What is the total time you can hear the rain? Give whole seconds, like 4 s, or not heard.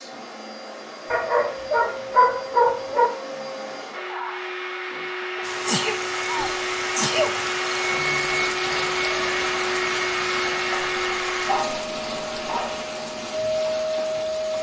9 s.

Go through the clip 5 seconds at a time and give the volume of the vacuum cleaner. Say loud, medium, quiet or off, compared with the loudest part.
medium, loud, loud.